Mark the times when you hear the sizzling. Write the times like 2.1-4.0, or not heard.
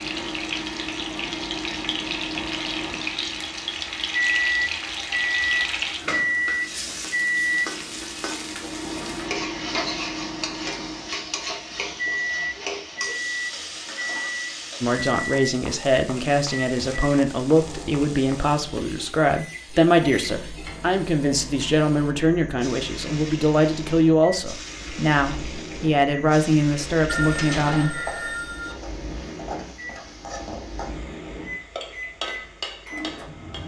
0.0-33.6.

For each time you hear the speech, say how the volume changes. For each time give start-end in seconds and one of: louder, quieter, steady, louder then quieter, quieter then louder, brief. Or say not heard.
14.8-28.1 steady.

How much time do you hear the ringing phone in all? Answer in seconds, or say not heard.
2 s.